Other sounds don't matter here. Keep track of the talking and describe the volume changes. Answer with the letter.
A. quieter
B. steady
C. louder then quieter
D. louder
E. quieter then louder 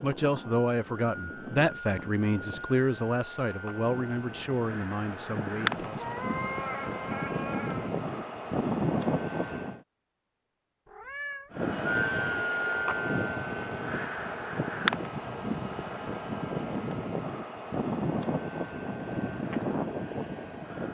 A.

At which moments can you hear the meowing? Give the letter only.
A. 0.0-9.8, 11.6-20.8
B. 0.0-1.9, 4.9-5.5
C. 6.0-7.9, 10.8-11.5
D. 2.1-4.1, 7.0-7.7
C.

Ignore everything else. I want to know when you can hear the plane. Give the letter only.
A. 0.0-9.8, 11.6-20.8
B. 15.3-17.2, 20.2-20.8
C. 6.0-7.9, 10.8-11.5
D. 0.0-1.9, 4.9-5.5
A.